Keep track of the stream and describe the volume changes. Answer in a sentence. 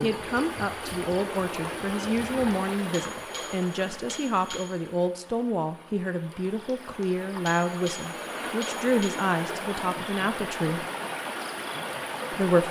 The loudness of the stream goes down, then up.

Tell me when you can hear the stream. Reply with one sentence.
The stream can be heard from 0.0 to 12.6 s.